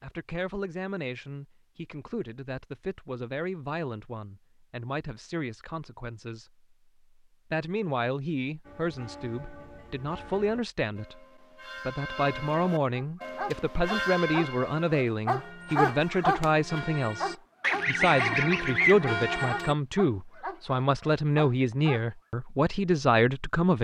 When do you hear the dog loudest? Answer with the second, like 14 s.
16 s.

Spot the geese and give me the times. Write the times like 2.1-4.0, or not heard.
17.6-19.5.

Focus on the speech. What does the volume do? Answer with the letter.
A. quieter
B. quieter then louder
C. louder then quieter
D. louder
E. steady
D.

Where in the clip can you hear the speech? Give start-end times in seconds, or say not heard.
0.0-6.5, 7.5-11.2, 11.8-23.7.